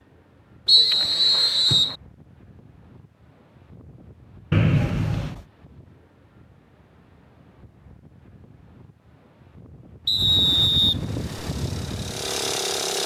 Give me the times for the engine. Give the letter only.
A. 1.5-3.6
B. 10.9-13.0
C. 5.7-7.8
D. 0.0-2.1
B.